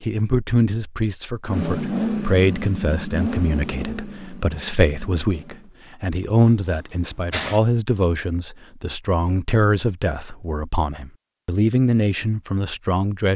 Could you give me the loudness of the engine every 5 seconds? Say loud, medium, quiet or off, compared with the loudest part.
loud, medium, off.